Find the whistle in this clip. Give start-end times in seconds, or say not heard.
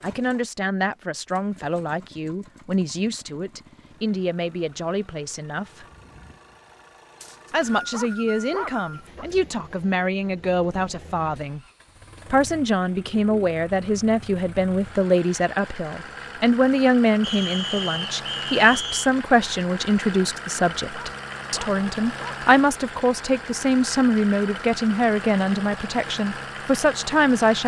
7.2-9.1, 17.2-19.1.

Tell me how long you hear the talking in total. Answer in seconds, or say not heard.
25 s.